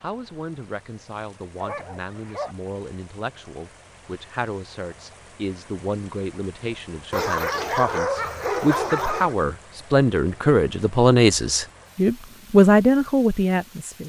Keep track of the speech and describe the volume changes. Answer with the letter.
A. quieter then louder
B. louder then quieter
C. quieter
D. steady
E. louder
E.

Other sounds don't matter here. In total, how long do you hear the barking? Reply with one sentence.
You can hear the barking for 3 seconds altogether.